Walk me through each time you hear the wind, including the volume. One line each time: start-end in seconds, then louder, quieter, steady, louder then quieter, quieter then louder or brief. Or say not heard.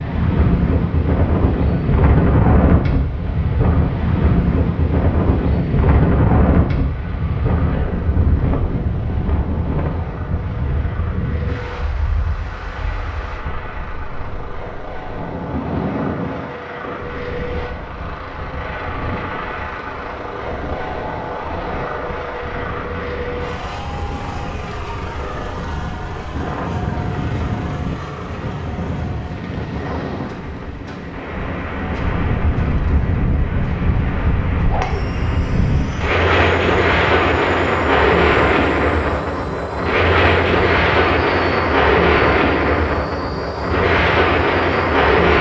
0.0-45.3 quieter then louder.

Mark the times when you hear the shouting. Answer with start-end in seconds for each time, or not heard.
not heard.